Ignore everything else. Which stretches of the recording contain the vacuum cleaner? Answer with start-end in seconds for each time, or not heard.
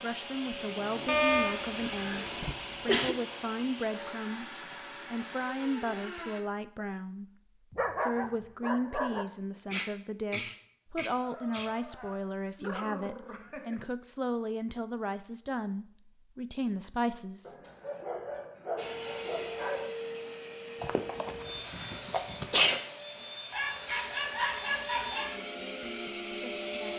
0.0-6.5, 18.8-26.9.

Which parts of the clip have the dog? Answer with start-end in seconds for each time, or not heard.
1.1-2.5, 7.7-9.2, 11.2-13.8, 17.4-19.9, 23.5-25.4.